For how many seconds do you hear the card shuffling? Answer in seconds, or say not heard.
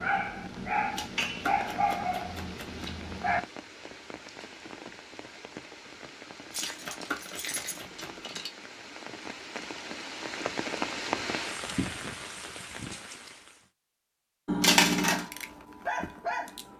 4 s.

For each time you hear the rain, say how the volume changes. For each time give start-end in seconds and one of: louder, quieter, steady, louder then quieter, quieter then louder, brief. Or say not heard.
0.0-13.7 louder.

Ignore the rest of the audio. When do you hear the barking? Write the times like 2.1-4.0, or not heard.
0.0-3.4, 15.1-16.7.